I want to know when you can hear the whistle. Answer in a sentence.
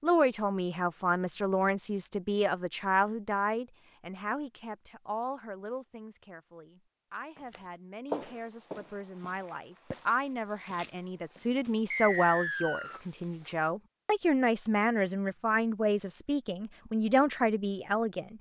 You can hear the whistle from 11.9 to 13.0 s.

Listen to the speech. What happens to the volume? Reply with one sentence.
The loudness of the speech goes down, then up.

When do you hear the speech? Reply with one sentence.
You can hear the speech from 0.0 to 18.3 s.